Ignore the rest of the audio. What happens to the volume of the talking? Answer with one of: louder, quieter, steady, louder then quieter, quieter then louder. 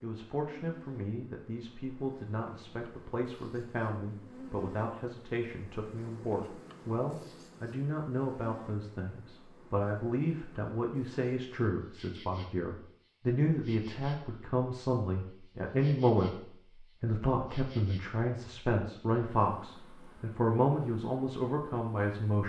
louder.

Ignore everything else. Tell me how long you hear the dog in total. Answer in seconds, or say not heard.
not heard.